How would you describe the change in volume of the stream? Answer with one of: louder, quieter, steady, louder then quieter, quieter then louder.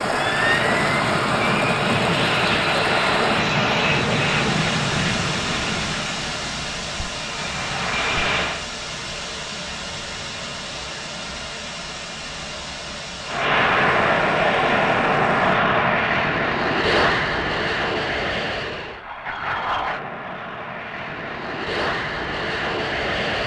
quieter.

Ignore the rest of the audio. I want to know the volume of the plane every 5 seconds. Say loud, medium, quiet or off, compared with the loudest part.
loud, medium, loud, loud, medium.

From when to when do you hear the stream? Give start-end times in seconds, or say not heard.
0.0-15.6.